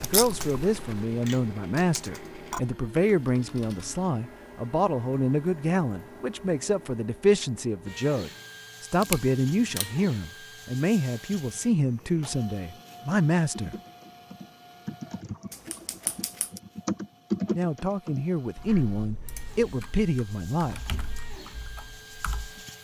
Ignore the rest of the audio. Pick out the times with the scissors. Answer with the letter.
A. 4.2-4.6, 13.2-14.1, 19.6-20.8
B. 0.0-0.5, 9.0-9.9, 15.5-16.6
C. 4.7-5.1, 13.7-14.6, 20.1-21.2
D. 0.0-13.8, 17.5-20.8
B.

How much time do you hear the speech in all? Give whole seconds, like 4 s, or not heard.
17 s.